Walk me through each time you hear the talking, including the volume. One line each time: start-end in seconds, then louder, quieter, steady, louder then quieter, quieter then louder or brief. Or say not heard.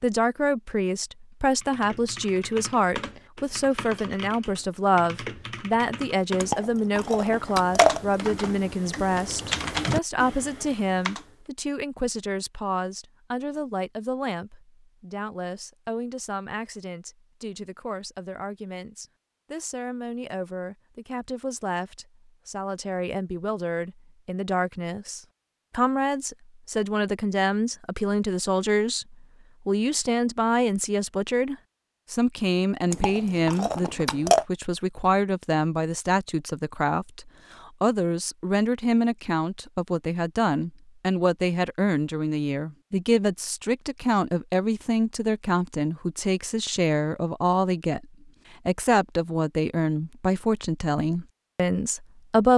0.0-52.5 quieter then louder.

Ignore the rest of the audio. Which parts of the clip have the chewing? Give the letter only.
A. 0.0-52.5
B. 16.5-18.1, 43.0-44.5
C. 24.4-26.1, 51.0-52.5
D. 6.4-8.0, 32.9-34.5
D.